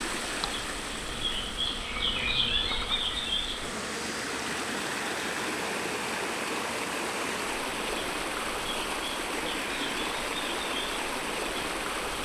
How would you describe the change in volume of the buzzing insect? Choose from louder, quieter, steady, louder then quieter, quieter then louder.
quieter.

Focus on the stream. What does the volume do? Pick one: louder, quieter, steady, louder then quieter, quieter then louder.
louder.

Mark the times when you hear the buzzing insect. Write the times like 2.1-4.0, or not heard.
0.0-12.1.